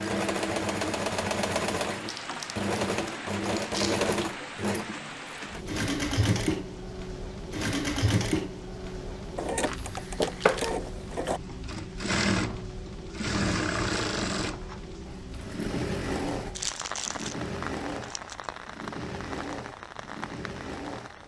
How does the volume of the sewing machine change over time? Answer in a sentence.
The volume of the sewing machine goes down.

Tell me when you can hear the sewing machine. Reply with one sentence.
You can hear the sewing machine from 0.0 to 21.2 s.